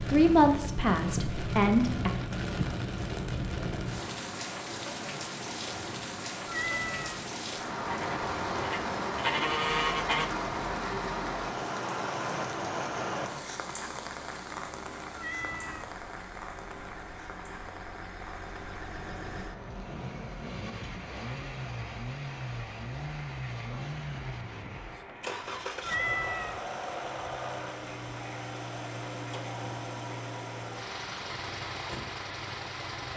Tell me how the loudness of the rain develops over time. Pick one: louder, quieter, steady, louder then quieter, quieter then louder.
quieter.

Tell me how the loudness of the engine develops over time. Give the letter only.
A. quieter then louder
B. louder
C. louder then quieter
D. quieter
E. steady
B.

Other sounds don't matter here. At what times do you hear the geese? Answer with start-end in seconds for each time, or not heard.
7.8-10.3.